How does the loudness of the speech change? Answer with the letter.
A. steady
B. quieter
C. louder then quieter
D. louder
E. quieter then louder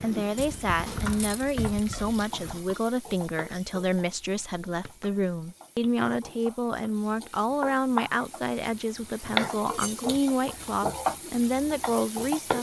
A.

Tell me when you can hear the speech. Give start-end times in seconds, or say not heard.
0.0-12.5.